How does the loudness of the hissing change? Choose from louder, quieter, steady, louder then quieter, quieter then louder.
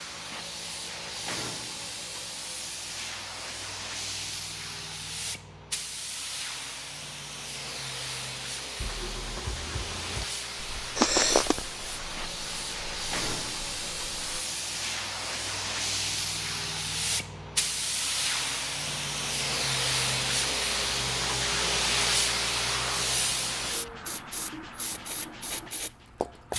louder.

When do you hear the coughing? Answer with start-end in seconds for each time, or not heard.
10.9-11.6.